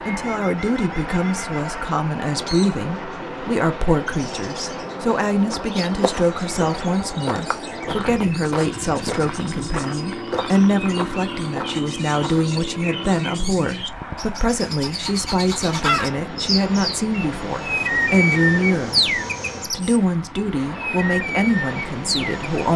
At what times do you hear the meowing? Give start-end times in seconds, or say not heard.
not heard.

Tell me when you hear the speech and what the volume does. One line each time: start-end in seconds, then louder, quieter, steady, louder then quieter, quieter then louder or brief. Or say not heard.
0.1-22.7 steady.